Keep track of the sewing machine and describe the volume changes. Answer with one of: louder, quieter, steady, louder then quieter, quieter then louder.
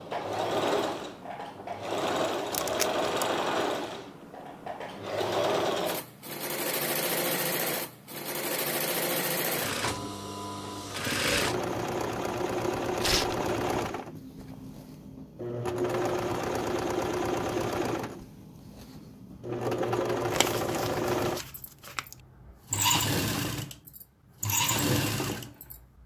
steady.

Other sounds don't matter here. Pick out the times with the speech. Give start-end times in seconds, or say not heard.
not heard.